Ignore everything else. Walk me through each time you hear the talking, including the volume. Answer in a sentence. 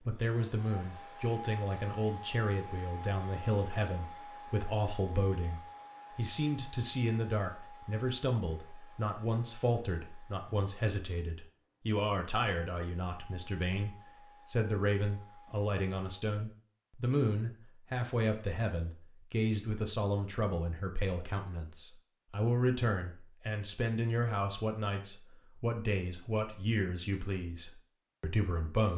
You can hear the talking from 0.1 to 28.9 s, at a steady volume.